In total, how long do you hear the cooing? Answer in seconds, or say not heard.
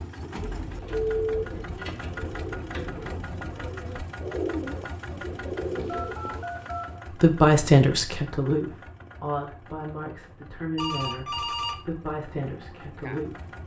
6 s.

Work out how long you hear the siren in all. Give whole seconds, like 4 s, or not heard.
not heard.